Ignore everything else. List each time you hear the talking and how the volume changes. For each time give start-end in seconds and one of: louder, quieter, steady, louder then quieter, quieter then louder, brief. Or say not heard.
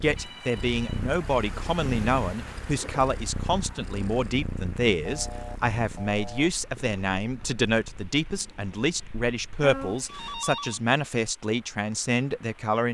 0.0-12.8 steady.